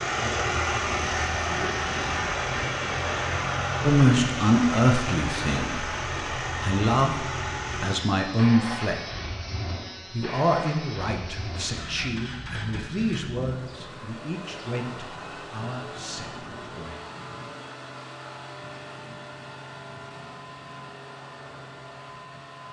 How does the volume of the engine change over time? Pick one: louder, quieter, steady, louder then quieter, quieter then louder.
quieter.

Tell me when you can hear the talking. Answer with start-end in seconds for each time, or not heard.
3.9-5.8, 6.6-9.0, 10.1-16.9.